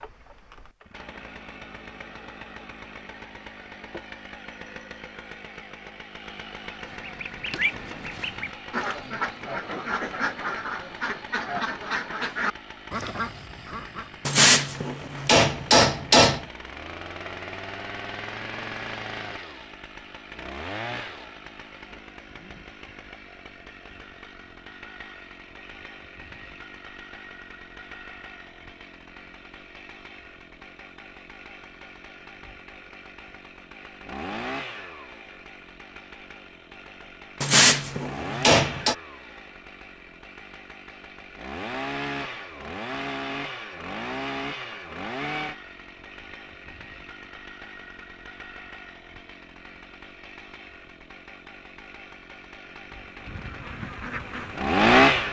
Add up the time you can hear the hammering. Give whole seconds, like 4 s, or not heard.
4 s.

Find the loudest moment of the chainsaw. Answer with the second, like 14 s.
55 s.